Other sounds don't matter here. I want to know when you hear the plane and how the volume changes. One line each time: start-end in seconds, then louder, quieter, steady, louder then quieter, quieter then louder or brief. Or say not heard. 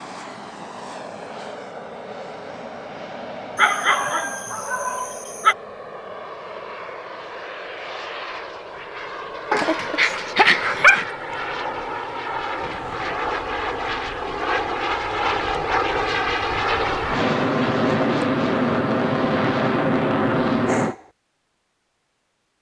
0.0-20.9 louder.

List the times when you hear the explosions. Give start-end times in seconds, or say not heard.
12.6-13.2.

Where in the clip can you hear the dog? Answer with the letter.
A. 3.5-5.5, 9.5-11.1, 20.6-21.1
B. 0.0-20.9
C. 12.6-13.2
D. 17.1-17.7
A.